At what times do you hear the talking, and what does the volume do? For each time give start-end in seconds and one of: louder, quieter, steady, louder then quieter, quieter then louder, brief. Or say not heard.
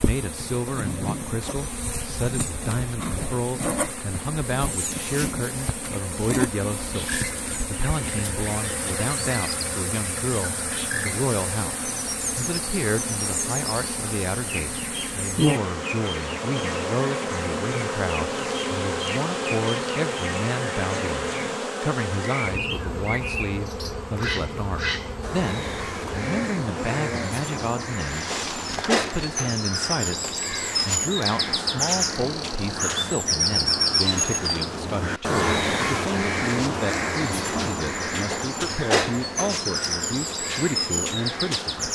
0.0-11.8 steady
12.3-41.8 steady.